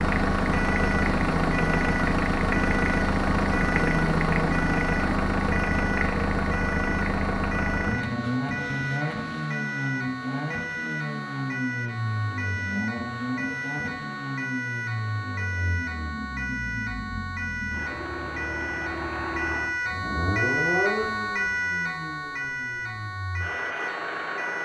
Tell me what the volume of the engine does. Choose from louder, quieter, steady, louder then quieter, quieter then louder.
quieter.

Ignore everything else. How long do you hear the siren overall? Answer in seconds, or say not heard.
24 s.